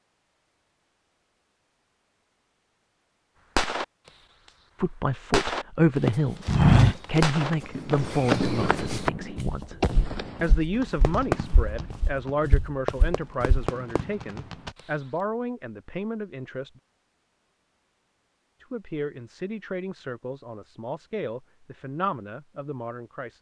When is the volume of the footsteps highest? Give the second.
7 s.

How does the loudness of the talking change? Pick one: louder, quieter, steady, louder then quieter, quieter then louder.
quieter.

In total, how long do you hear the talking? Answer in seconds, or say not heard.
17 s.